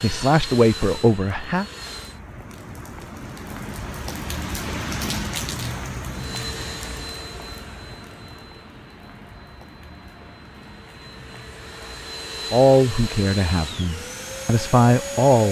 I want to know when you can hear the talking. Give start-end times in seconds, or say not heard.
0.0-1.6, 12.5-15.4.